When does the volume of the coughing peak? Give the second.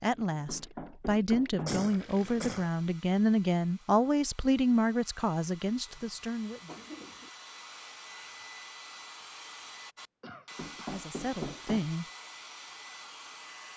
2 s.